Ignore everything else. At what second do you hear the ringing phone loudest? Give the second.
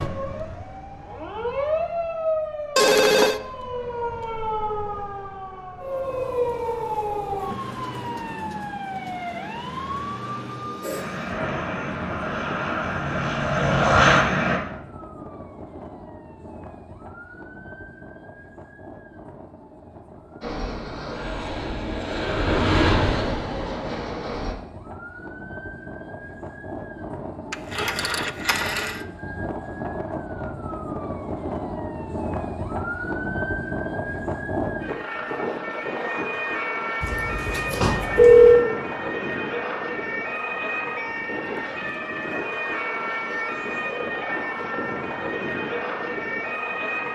38 s.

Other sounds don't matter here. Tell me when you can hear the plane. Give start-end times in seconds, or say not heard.
10.8-14.6, 20.4-24.6.